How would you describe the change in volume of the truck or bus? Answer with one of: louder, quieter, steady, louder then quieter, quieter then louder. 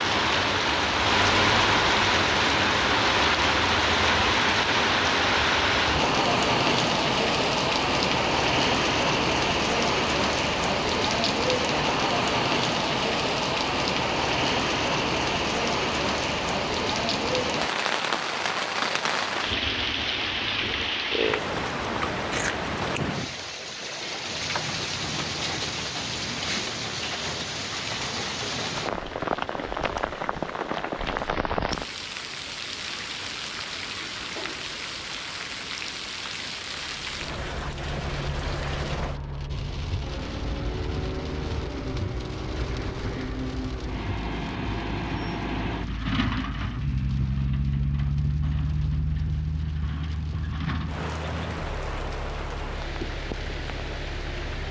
louder then quieter.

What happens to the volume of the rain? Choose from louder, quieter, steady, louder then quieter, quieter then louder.
quieter.